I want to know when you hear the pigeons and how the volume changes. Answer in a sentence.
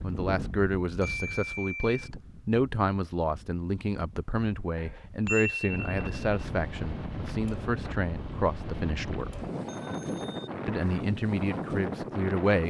You can't hear the pigeons here.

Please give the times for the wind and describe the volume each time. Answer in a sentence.
The wind can be heard from 0.0 to 12.6 s, getting quieter then louder.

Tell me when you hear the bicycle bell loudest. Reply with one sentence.
The volume of the bicycle bell peaks at 5 seconds.